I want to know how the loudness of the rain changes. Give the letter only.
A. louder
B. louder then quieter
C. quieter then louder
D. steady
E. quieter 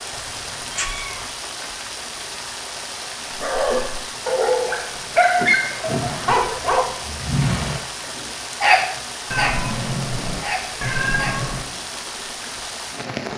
D.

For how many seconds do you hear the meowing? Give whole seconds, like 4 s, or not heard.
5 s.